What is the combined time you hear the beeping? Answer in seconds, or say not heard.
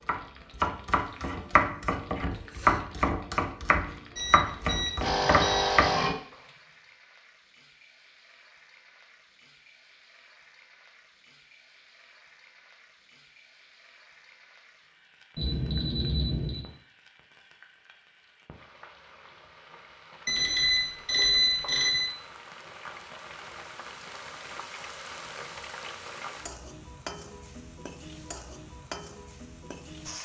5 s.